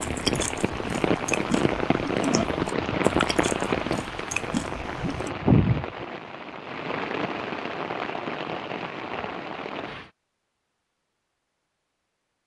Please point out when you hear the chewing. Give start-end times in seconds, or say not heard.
0.0-5.3.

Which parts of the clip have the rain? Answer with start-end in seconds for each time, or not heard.
0.0-10.1.